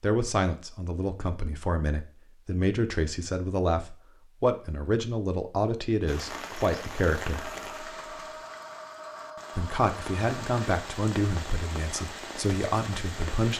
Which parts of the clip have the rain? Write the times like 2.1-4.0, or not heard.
6.0-13.5.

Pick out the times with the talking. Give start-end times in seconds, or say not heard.
0.0-7.5, 9.6-13.5.